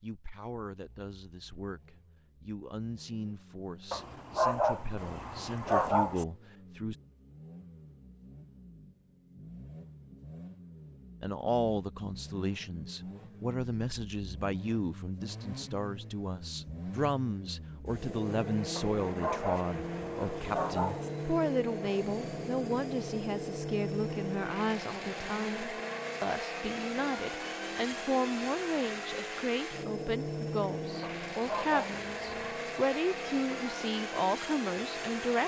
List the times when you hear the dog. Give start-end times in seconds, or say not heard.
3.9-6.2, 18.8-21.1, 31.0-32.4.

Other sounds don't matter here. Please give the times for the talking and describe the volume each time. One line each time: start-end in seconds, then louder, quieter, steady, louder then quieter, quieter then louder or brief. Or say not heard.
0.0-7.0 louder
11.2-35.4 steady.